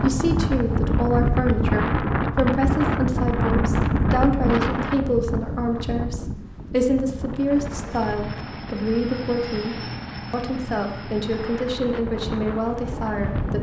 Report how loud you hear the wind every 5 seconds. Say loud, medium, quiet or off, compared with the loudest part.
loud, medium, medium.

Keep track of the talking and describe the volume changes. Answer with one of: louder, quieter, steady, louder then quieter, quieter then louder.
steady.